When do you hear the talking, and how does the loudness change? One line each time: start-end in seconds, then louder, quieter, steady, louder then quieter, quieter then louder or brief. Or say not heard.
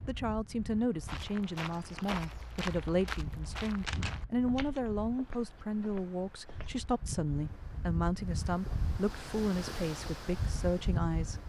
0.1-11.4 steady.